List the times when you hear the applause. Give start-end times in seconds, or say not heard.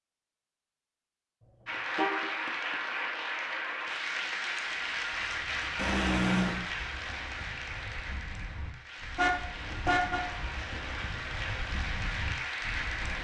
1.6-13.1.